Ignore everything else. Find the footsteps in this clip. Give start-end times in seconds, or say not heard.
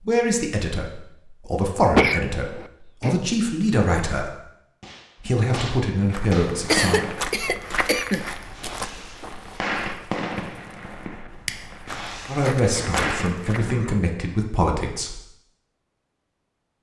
6.0-13.7.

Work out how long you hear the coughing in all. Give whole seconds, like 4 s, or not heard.
4 s.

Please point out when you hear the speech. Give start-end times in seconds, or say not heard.
0.0-4.3, 5.2-7.0, 12.2-15.2.